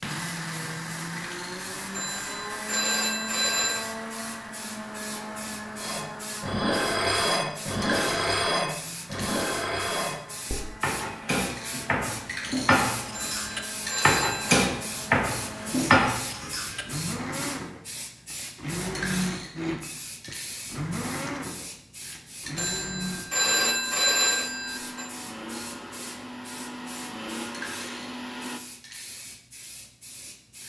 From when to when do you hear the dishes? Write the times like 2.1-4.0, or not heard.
5.8-16.9.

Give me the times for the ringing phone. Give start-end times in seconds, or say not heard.
1.9-4.0, 13.1-14.6, 22.6-25.1.